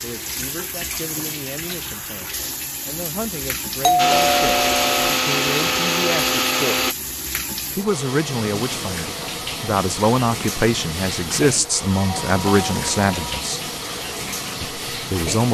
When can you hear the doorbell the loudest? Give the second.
4 s.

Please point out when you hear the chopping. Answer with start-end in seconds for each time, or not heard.
not heard.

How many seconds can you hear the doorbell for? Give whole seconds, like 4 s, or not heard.
3 s.